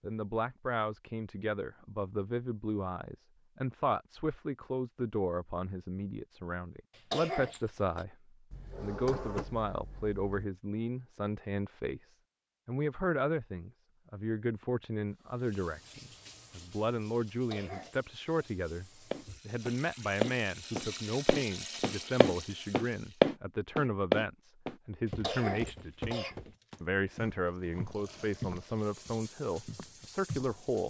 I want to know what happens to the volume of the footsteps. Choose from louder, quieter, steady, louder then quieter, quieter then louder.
louder then quieter.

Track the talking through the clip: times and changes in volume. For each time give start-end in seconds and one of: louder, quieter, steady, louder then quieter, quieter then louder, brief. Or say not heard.
0.0-30.8 steady.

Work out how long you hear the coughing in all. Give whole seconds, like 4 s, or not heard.
3 s.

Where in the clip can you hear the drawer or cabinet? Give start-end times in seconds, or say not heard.
8.5-10.4.